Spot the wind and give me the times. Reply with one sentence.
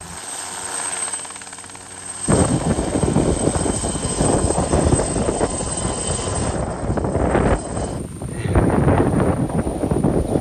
You can hear the wind from 2.2 to 10.3 s.